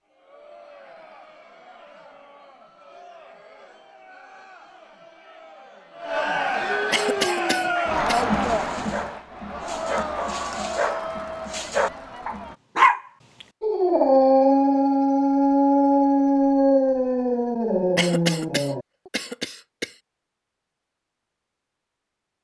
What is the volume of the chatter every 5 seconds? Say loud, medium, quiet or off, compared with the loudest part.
quiet, loud, medium, off, off.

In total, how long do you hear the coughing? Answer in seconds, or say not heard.
3 s.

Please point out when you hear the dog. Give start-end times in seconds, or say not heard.
7.2-18.8.